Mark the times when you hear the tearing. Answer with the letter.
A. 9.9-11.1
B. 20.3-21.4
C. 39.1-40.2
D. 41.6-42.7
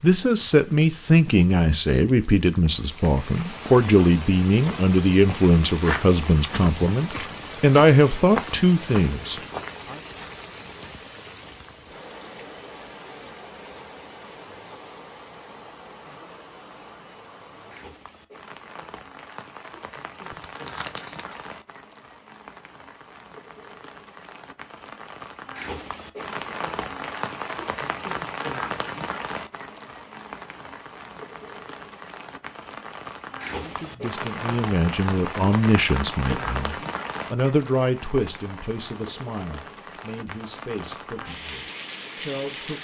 B.